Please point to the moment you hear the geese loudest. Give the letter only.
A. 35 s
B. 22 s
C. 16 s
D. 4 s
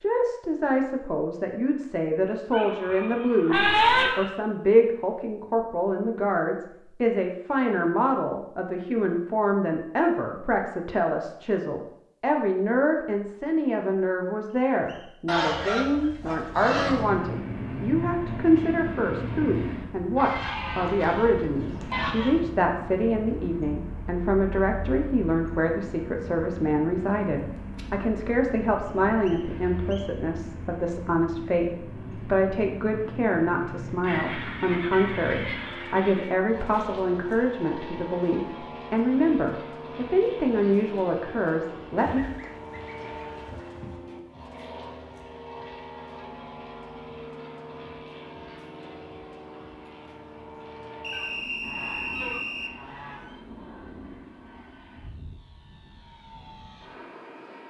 D.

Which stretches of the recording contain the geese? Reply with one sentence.
You can hear the geese from 2.5 to 4.3 s, from 15.2 to 17.1 s, from 20.1 to 22.4 s, from 34.0 to 36.3 s, from 42.0 to 44.0 s and from 51.1 to 53.6 s.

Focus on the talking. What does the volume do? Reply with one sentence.
The volume of the talking stays about the same.